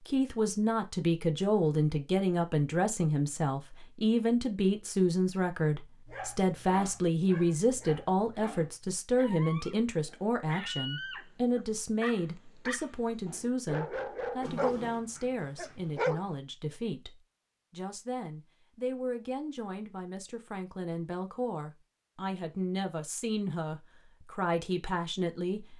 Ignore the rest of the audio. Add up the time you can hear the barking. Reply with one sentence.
You can hear the barking for 10 seconds altogether.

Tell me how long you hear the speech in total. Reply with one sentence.
The speech can be heard for 26 seconds in total.